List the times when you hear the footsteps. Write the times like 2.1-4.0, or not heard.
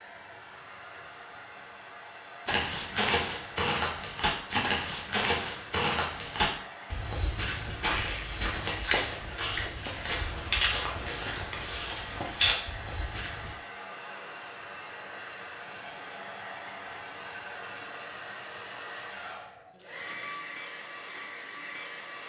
2.5-13.6.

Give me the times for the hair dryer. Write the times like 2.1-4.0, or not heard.
0.0-22.2.